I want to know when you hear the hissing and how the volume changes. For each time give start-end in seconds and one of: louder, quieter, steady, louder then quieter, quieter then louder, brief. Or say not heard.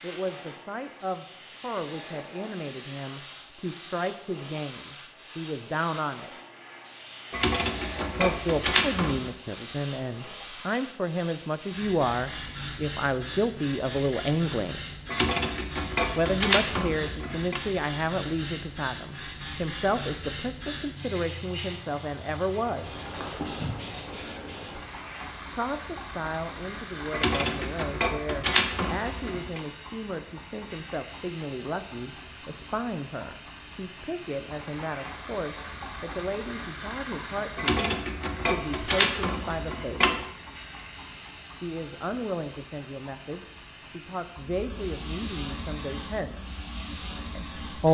0.0-47.8 steady.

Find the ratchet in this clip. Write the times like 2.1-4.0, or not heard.
7.3-9.3, 15.1-17.6, 27.1-29.6, 37.5-40.2.